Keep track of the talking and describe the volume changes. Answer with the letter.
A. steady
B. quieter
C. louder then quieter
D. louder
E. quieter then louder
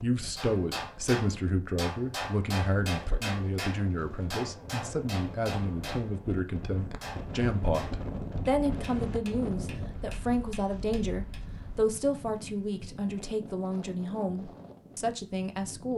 A.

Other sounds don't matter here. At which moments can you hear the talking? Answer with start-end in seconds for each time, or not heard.
0.0-15.9.